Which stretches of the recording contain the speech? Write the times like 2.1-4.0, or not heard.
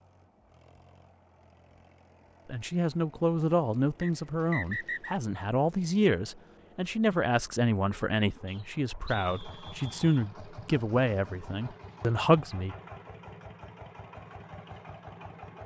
2.5-12.8.